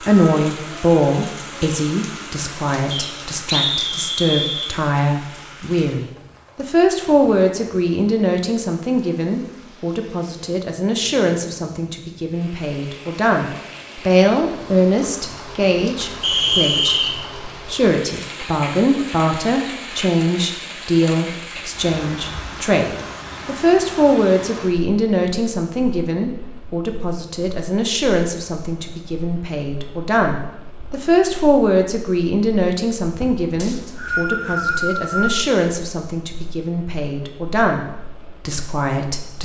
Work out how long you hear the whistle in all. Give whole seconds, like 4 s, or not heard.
5 s.